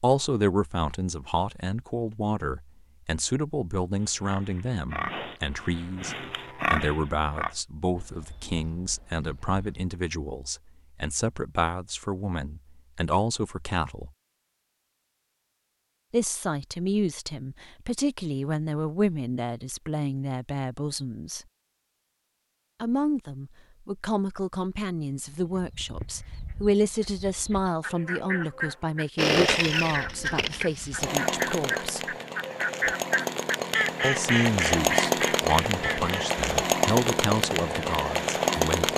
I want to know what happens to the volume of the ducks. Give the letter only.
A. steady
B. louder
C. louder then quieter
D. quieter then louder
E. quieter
B.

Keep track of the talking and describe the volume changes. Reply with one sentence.
The volume of the talking stays about the same.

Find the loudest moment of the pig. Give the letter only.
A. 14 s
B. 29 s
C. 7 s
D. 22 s
C.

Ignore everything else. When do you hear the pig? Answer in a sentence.
You can hear the pig from 4.0 to 9.9 s.